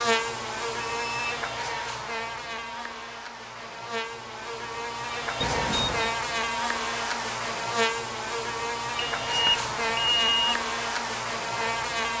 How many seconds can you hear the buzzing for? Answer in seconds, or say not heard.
12 s.